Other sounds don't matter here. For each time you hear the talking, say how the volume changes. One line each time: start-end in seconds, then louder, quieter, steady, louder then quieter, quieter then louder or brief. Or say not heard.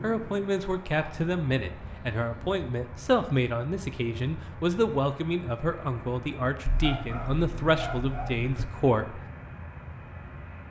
0.0-9.2 steady.